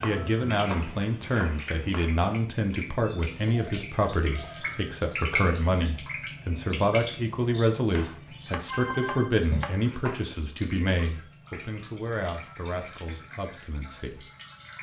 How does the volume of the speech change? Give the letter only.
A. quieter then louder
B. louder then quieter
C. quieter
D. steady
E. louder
C.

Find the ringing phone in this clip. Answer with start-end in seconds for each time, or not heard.
4.0-5.0, 8.2-9.3.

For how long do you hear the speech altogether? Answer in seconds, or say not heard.
14 s.